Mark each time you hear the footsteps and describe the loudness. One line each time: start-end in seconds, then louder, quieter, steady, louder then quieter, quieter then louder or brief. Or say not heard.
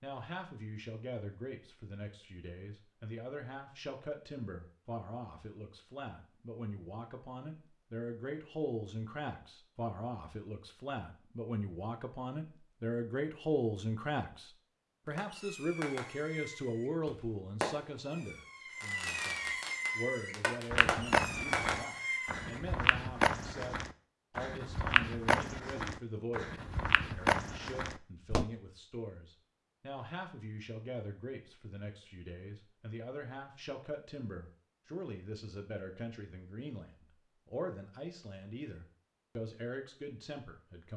20.7-28.4 steady.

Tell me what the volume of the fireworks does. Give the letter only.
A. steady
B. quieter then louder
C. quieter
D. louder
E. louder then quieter
D.